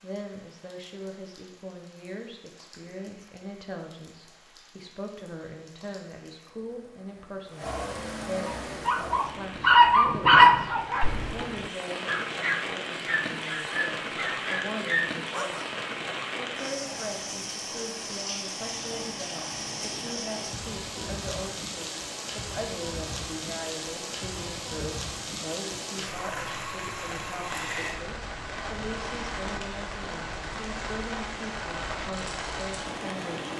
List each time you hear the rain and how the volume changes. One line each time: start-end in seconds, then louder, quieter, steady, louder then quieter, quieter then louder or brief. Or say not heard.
0.0-33.5 louder.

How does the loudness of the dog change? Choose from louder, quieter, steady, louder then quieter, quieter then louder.
quieter.